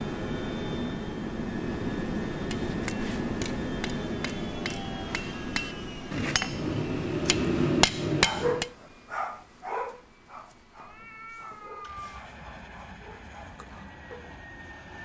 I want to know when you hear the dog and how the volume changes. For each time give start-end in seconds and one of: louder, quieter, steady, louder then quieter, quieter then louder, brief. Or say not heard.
8.2-14.3 quieter.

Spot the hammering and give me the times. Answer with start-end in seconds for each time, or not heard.
2.4-8.7.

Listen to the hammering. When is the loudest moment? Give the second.
8 s.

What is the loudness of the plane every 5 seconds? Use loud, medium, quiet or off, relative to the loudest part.
loud, medium, quiet.